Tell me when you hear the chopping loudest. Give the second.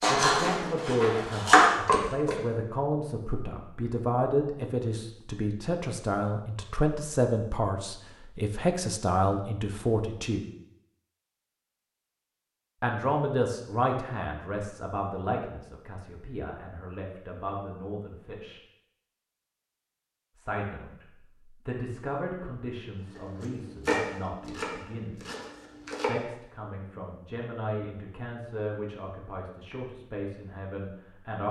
2 s.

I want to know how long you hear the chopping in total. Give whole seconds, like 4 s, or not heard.
5 s.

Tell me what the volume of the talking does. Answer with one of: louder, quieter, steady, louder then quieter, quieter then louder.
quieter.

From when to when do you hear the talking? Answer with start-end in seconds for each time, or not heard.
0.1-10.4, 12.8-18.6, 20.4-25.2, 26.1-31.4.